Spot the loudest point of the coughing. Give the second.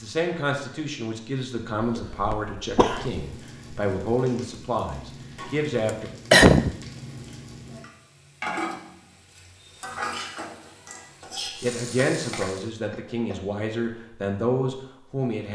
6 s.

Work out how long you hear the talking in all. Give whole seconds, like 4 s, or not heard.
10 s.